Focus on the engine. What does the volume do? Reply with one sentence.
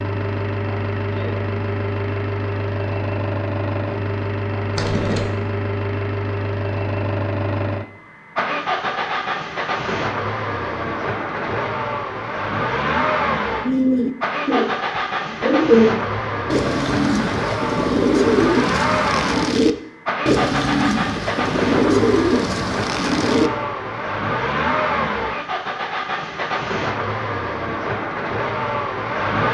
The loudness of the engine stays about the same.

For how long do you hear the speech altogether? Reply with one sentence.
You can't hear the speech here.